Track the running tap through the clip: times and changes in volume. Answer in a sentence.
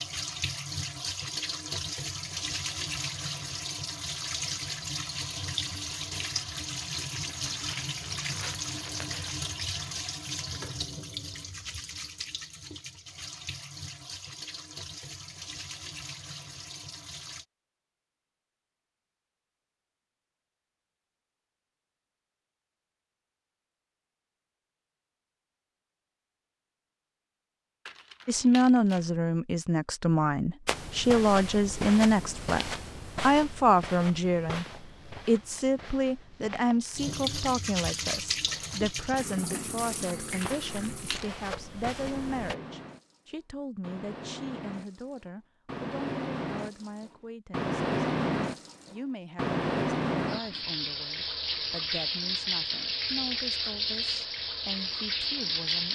You can hear the running tap from 0.0 to 17.4 s, getting quieter; and from 36.9 to 55.8 s, getting quieter then louder.